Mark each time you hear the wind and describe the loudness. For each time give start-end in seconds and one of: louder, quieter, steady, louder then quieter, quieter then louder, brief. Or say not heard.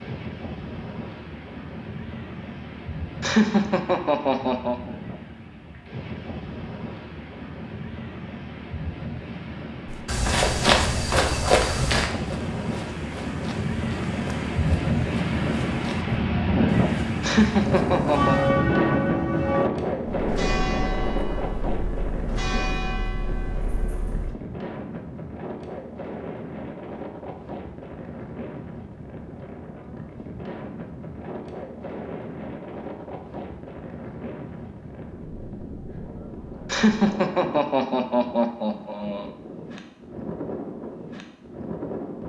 0.0-42.2 louder then quieter.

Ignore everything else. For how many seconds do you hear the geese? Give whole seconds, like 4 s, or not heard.
not heard.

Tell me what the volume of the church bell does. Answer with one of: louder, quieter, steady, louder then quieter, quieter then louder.
quieter.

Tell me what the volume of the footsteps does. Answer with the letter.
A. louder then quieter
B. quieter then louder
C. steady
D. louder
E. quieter
E.